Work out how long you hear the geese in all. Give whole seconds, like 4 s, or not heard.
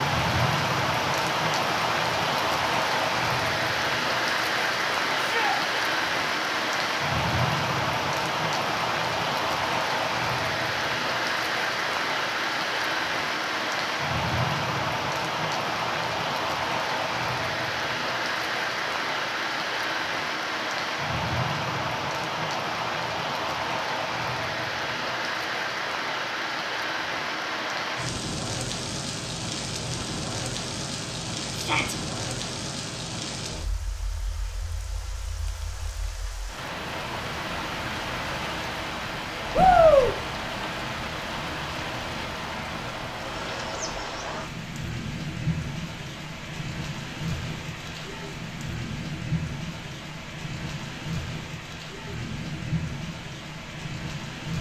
not heard.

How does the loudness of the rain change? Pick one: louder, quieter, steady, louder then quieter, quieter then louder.
quieter.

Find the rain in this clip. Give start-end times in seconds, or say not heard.
0.0-54.5.